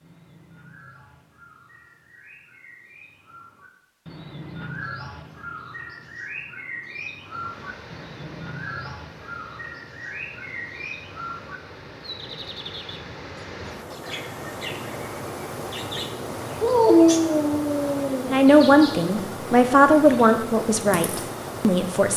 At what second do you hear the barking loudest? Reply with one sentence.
The loudest moment of the barking is at 17 seconds.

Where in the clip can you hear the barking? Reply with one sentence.
The barking can be heard from 16.6 to 18.4 s.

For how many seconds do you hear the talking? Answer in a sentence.
The talking can be heard for 4 seconds in total.